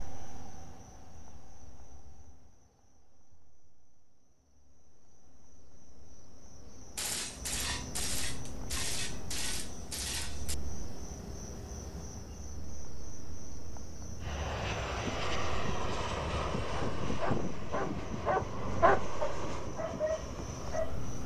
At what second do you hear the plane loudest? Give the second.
17 s.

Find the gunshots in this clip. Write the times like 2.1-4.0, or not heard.
7.0-10.6.